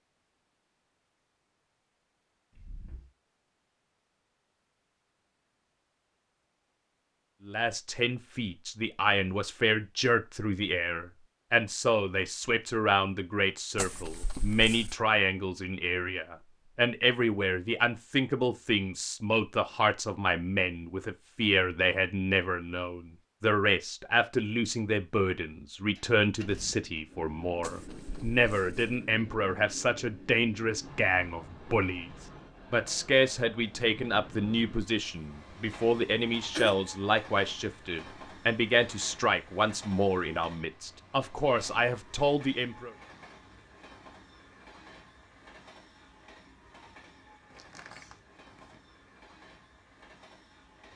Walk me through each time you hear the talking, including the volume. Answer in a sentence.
You can hear the talking from 7.5 to 43.0 s, at a steady volume.